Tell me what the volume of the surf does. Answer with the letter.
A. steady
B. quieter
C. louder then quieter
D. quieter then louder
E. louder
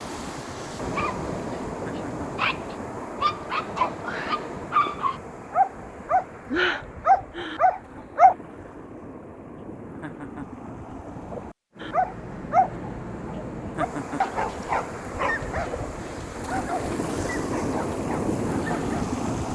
D.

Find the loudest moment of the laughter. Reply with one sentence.
The volume of the laughter peaks at 14 seconds.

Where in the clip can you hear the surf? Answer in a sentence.
You can hear the surf from 0.0 to 19.5 s.